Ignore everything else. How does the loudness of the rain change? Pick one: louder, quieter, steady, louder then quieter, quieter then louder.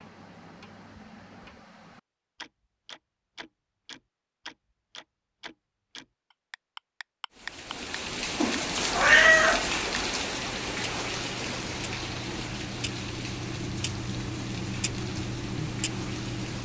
quieter.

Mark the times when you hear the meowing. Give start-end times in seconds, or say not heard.
8.4-9.7.